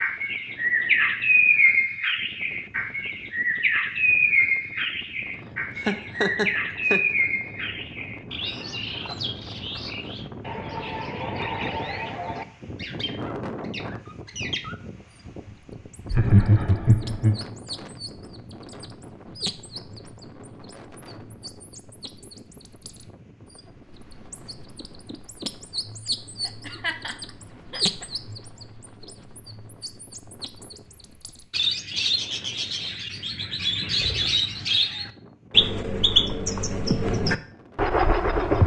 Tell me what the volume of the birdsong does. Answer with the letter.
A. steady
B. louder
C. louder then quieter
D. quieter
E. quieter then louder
E.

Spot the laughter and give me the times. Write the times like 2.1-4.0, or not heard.
5.8-7.2, 16.1-17.4, 26.4-28.1.